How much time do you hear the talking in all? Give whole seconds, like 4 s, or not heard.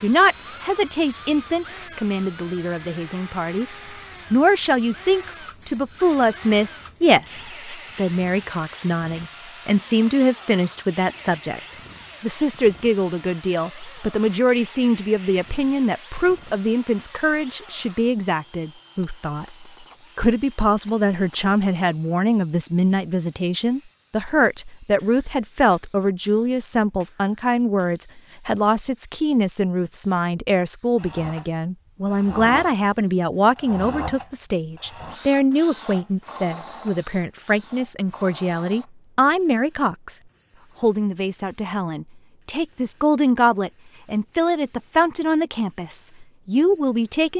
46 s.